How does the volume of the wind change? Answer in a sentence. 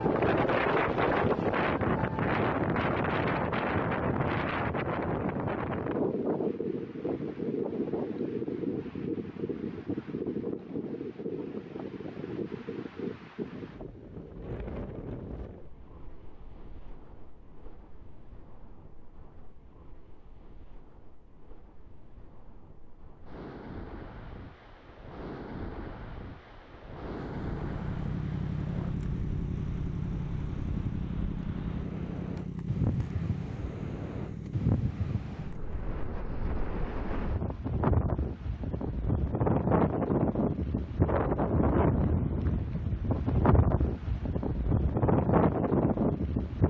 The loudness of the wind goes down, then up.